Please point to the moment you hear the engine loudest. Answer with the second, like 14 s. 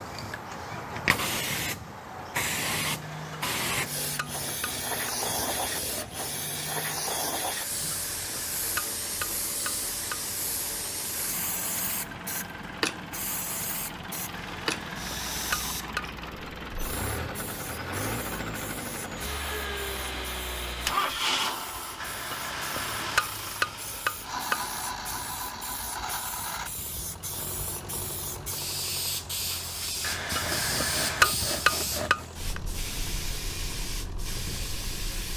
21 s.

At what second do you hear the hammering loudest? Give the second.
31 s.